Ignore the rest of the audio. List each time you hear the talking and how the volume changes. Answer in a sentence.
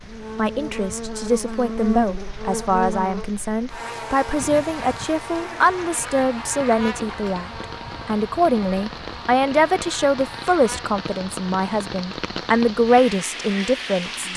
You can hear the talking from 0.3 to 14.3 s, at a steady volume.